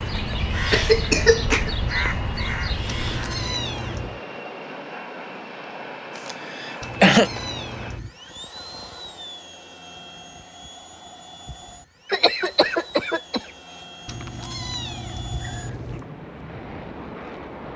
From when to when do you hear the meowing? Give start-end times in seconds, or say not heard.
2.9-4.2, 6.8-8.2, 14.1-16.1.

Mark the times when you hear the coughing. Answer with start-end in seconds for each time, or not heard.
0.7-1.7, 6.2-7.3, 12.1-13.4.